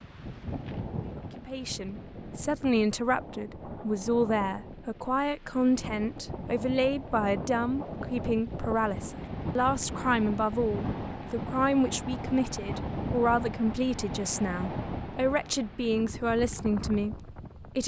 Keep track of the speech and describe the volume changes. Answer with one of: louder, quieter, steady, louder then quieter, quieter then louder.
steady.